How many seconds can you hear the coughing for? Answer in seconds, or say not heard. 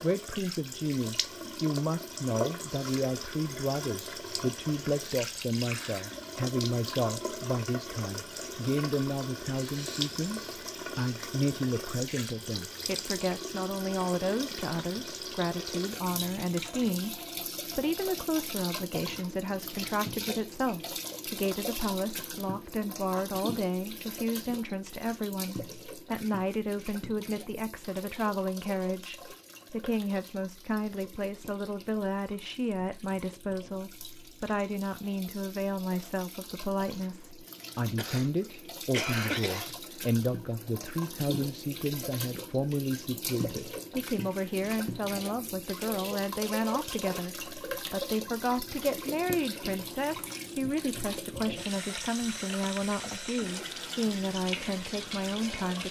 2 s.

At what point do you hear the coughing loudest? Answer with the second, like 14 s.
39 s.